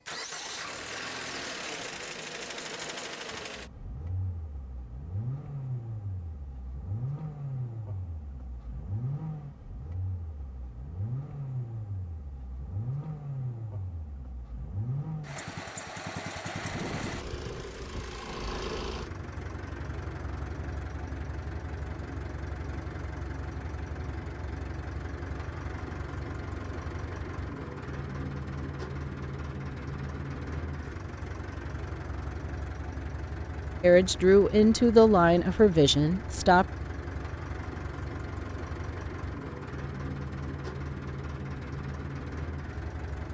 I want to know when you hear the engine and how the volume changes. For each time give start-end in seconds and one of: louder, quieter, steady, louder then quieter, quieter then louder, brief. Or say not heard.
0.1-43.2 steady.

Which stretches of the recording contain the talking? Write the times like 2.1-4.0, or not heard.
33.8-36.6.